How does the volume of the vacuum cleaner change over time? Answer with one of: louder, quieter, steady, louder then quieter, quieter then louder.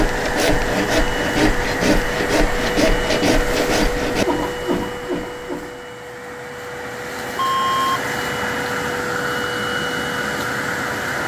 quieter then louder.